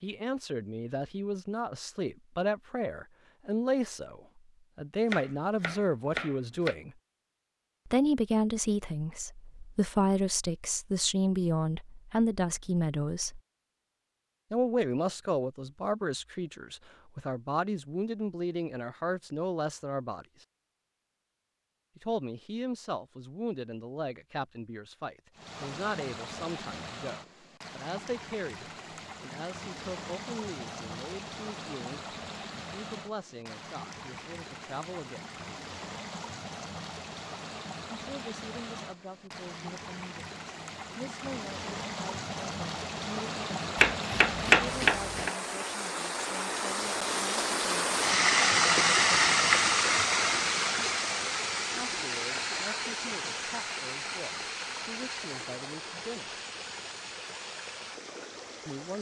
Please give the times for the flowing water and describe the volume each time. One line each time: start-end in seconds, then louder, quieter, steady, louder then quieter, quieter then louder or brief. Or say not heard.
25.3-58.9 louder then quieter.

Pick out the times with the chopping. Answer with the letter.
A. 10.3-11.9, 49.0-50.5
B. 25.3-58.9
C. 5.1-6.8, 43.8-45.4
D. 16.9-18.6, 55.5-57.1
C.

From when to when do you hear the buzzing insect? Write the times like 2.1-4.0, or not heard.
not heard.